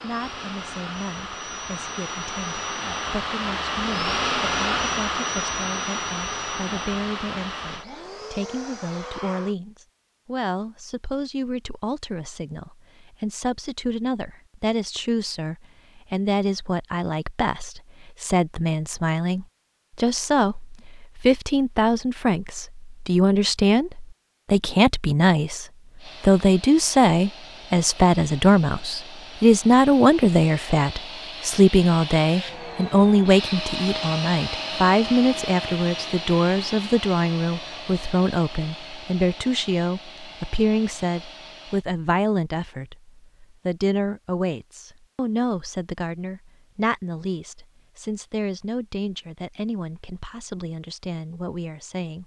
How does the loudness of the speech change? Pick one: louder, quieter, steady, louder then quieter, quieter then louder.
louder then quieter.